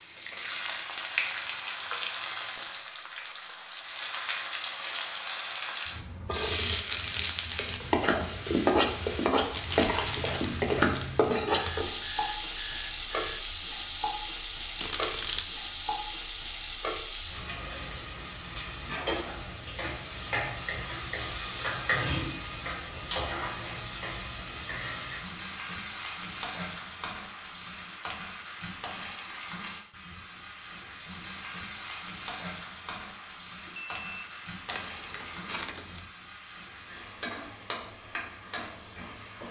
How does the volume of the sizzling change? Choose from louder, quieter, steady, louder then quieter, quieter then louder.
quieter.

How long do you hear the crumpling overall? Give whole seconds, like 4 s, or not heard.
4 s.